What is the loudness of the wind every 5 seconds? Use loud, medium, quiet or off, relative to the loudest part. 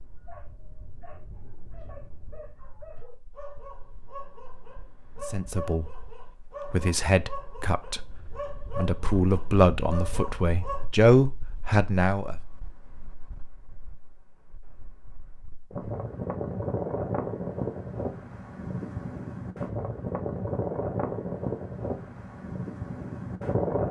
quiet, quiet, quiet, loud, loud.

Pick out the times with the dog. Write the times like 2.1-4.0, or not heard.
0.2-10.9.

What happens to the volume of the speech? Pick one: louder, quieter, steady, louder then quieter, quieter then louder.
louder.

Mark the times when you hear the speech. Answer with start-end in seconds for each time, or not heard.
5.2-12.3.